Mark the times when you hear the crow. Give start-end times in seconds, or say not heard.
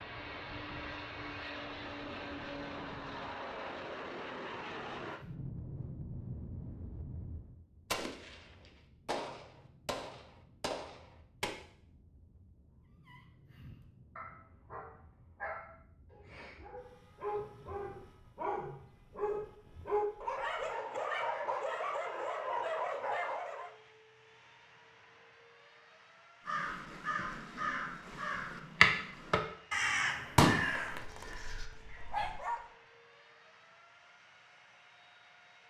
26.4-32.0.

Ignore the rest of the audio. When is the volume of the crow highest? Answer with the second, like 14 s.
29 s.